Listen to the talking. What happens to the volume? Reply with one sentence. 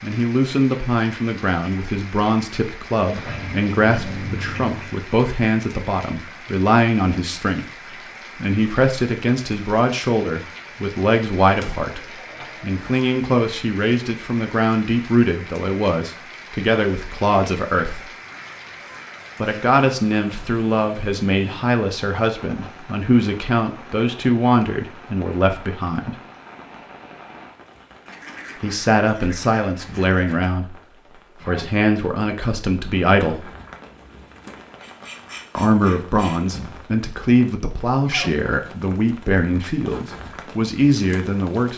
The volume of the talking stays about the same.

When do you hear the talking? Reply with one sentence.
You can hear the talking from 0.0 to 18.1 s, from 19.4 to 26.1 s, from 28.6 to 33.5 s and from 35.5 to 41.7 s.